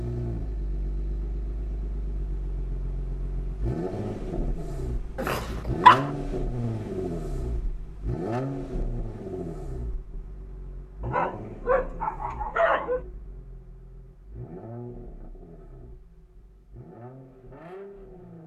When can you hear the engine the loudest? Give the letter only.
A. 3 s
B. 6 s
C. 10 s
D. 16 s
B.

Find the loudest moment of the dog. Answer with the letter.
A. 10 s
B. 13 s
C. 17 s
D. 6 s
D.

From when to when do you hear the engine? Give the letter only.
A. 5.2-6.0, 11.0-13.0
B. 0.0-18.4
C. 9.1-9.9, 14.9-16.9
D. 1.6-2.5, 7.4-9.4
B.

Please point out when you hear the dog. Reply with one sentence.
You can hear the dog from 5.2 to 6.0 s and from 11.0 to 13.0 s.